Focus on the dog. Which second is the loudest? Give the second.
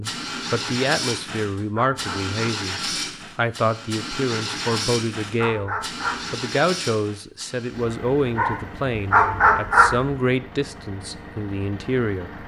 9 s.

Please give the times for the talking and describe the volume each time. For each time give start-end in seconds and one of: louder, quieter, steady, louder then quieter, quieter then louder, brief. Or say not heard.
0.0-12.4 steady.